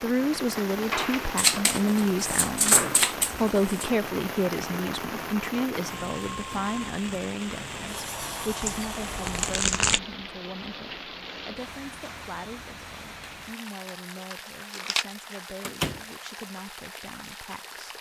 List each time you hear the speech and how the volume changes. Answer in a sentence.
The speech can be heard briefly from 0.0 to 2.8 s; and from 3.4 to 17.9 s, getting quieter.